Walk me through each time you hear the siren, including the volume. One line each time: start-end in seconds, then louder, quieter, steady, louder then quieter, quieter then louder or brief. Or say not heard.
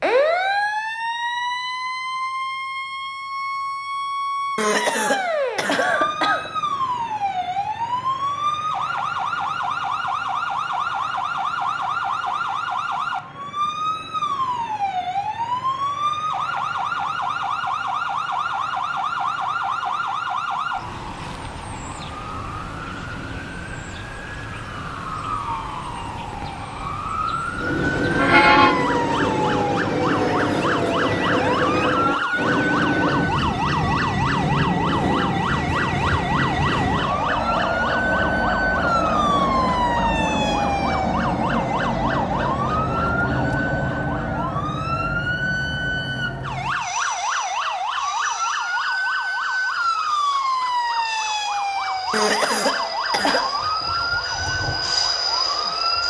0.0-56.0 steady.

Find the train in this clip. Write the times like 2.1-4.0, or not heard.
27.5-56.0.